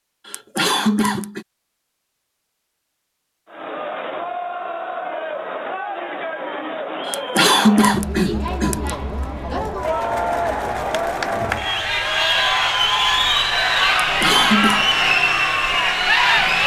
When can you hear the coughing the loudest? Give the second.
8 s.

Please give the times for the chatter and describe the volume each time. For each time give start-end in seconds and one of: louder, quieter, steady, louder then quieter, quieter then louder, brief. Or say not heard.
3.5-16.6 louder.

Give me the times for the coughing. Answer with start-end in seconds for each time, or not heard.
0.2-1.4, 7.0-8.9, 14.0-14.8.